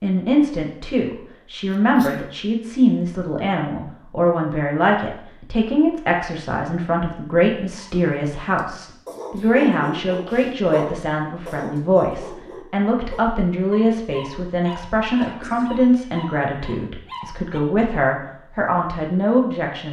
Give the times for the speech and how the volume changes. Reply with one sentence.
You can hear the speech from 0.0 to 19.8 s, at a steady volume.